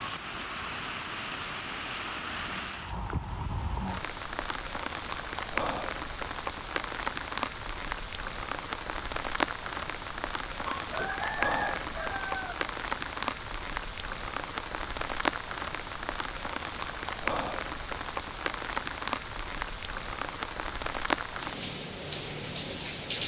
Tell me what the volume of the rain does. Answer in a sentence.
The volume of the rain stays about the same.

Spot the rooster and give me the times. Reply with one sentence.
You can hear the rooster from 10.7 to 12.6 s.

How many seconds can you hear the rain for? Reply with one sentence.
The rain can be heard for 23 seconds in total.